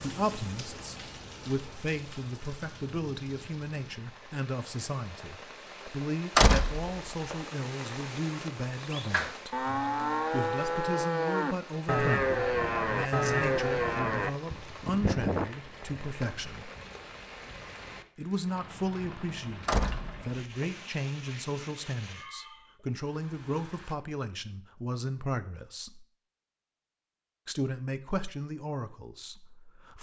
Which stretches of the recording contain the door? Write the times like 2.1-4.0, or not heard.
6.3-7.3, 19.6-20.6.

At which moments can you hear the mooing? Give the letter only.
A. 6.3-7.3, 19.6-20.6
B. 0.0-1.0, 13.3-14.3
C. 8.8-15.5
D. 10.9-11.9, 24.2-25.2
C.